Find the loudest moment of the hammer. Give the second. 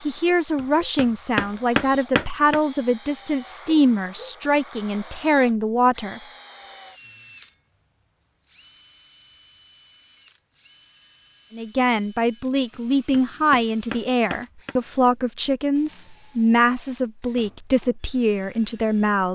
2 s.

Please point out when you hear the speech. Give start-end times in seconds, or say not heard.
0.0-6.2, 11.5-19.3.